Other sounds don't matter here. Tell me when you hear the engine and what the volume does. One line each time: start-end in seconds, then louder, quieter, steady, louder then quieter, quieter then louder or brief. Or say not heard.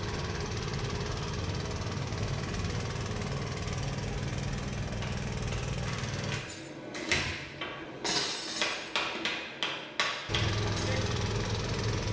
0.0-6.4 steady
10.2-12.0 brief.